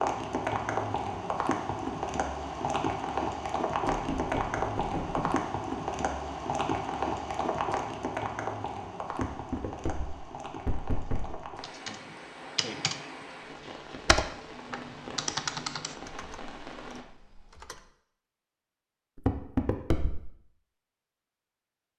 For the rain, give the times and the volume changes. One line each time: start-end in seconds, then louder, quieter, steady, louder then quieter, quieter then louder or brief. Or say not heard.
0.0-17.1 quieter.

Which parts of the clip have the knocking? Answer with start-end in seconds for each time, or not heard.
3.9-5.4, 9.1-11.4, 19.1-20.3.